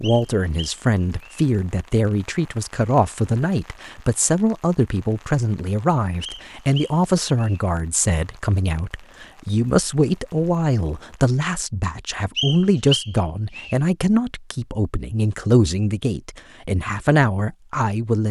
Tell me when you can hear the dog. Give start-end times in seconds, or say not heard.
not heard.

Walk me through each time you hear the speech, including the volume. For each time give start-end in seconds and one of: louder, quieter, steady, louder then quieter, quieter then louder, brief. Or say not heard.
0.0-18.2 steady.